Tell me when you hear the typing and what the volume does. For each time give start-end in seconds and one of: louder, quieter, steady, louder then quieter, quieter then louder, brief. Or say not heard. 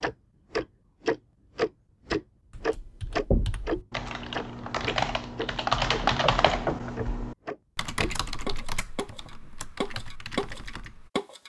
2.5-11.1 louder then quieter.